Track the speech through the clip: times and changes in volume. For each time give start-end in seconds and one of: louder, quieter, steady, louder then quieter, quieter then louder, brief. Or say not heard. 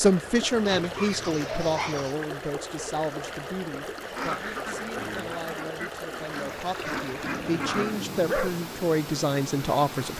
0.0-10.1 quieter then louder.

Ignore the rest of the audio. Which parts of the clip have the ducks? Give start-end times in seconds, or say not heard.
4.0-8.1.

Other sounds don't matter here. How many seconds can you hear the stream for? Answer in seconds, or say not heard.
10 s.